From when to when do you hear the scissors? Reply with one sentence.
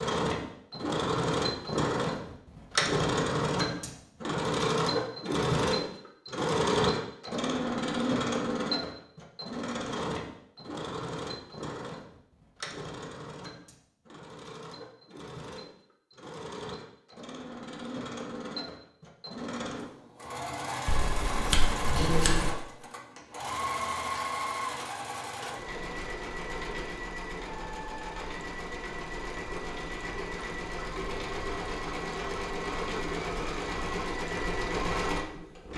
You can hear the scissors from 20.9 to 22.4 s.